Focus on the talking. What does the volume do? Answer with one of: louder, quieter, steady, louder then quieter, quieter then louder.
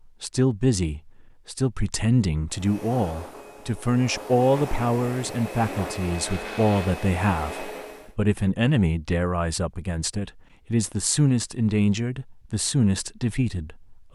steady.